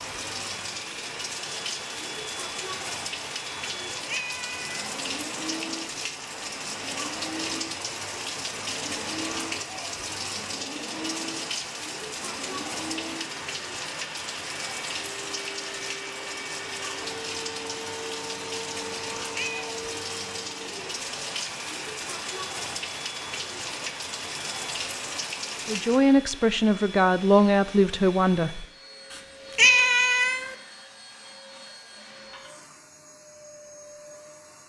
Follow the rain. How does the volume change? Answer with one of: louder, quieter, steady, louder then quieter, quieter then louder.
steady.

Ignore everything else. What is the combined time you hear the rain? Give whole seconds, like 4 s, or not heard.
26 s.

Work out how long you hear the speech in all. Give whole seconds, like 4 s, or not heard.
3 s.